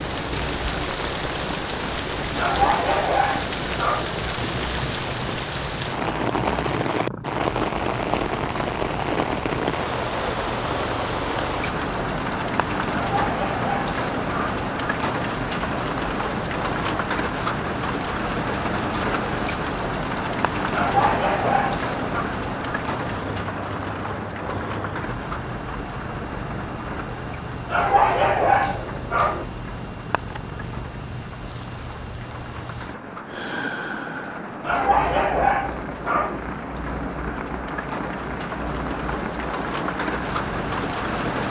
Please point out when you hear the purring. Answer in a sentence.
The purring can be heard from 0.0 to 41.4 s.